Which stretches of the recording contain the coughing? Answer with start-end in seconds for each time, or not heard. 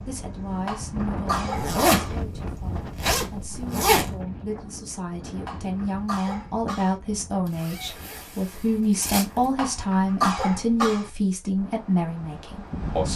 0.7-2.2, 5.5-7.0, 9.6-11.1.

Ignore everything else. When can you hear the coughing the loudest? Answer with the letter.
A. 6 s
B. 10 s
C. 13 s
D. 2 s
B.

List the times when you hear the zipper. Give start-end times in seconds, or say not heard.
1.5-4.2, 7.5-9.5.